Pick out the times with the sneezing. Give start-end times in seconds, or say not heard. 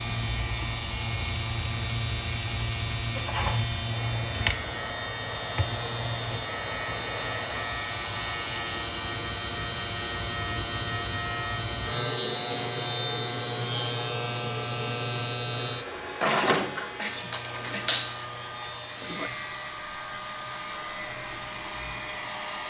3.1-3.6, 16.2-17.9.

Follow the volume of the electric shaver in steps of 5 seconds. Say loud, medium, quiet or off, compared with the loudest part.
loud, medium, loud, loud, loud.